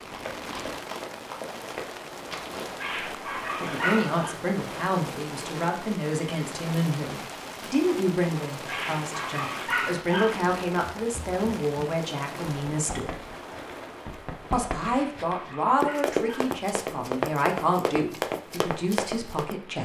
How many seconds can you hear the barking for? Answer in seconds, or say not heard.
5 s.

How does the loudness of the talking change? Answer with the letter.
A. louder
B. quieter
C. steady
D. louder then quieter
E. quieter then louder
C.